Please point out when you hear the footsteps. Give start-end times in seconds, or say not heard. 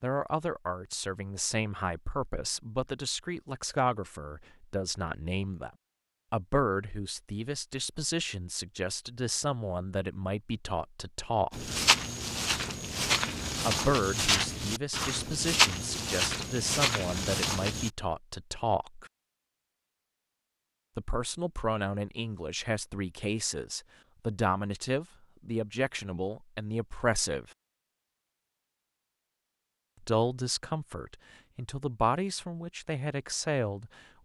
11.5-17.9.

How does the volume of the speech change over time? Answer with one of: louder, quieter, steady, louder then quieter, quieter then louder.
steady.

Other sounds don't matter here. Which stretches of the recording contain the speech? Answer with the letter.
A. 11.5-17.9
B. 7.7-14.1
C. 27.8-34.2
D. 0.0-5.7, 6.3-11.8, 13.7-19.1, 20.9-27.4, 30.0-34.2
D.